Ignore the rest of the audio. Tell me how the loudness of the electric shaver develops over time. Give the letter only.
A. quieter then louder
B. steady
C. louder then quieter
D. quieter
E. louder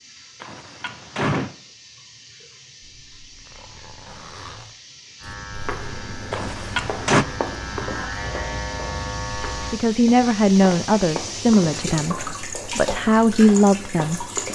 E.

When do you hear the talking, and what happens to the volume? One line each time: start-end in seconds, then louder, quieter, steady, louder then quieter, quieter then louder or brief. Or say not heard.
9.7-14.2 quieter then louder.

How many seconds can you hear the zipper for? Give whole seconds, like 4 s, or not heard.
2 s.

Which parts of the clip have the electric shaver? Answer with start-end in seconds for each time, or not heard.
5.2-9.8.